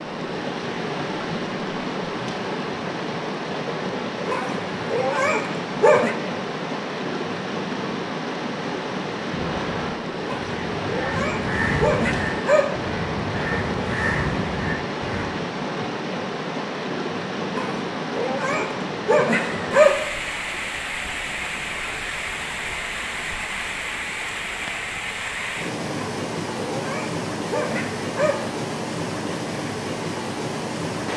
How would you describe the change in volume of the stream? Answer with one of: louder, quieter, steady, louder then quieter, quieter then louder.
steady.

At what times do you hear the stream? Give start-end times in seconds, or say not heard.
0.0-31.1.